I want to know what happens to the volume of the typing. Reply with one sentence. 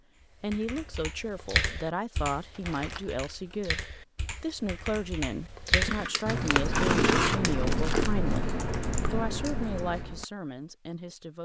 The volume of the typing goes down, then up.